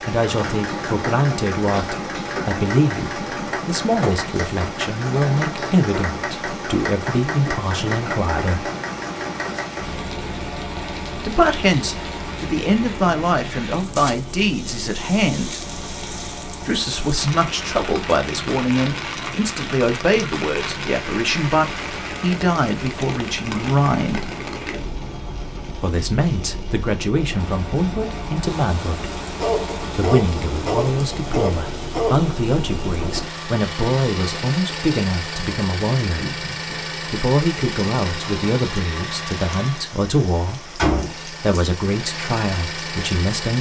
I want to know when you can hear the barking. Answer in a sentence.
The barking can be heard from 29.4 to 32.3 s.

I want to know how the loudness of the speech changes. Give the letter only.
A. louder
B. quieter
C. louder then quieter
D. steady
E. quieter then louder
D.